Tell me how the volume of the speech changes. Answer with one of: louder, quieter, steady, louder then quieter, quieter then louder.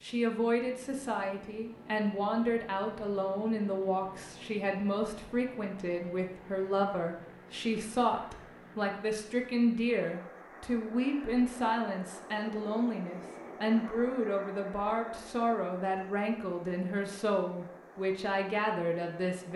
steady.